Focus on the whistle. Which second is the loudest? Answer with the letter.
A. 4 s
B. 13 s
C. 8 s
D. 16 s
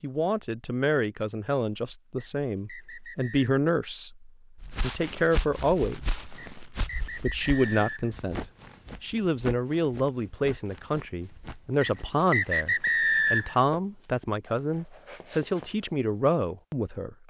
B.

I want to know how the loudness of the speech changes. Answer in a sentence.
The volume of the speech stays about the same.